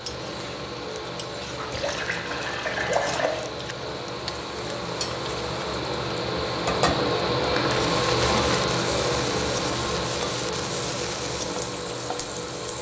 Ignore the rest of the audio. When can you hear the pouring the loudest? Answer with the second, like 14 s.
3 s.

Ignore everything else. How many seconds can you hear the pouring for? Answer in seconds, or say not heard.
3 s.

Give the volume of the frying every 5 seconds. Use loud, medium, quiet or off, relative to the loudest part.
medium, loud, loud.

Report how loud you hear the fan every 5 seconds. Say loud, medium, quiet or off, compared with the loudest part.
medium, loud, medium.